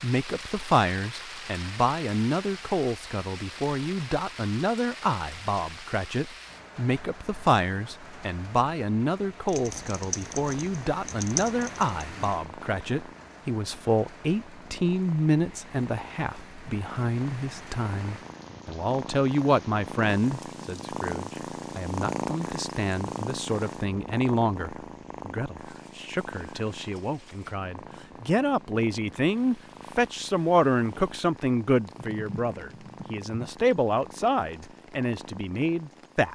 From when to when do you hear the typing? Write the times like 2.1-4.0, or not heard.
9.4-12.4, 31.9-33.5.